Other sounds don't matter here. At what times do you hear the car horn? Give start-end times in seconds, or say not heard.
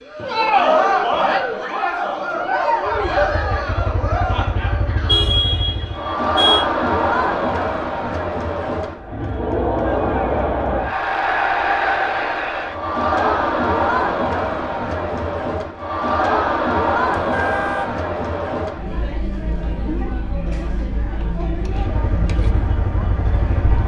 5.0-6.7, 17.1-17.9.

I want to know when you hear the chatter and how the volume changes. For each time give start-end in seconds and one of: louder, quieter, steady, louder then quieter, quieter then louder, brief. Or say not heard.
0.0-23.8 quieter.